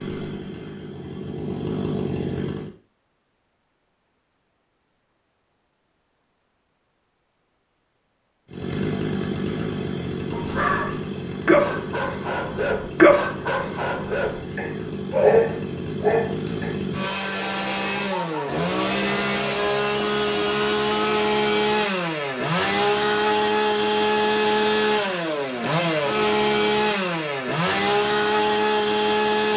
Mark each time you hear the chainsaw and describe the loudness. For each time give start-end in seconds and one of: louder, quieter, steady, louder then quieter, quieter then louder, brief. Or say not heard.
0.0-2.8 brief
8.5-29.5 louder.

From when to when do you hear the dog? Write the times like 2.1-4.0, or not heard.
10.3-16.8.